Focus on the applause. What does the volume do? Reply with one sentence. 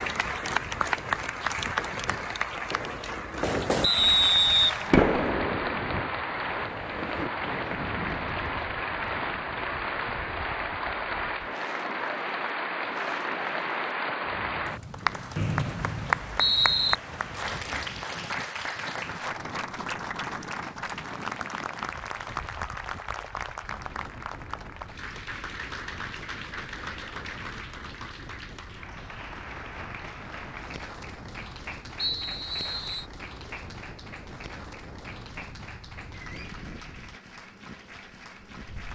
The volume of the applause goes down.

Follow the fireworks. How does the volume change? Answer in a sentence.
The volume of the fireworks goes up.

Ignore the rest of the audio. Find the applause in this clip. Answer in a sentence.
You can hear the applause from 0.0 to 38.9 s.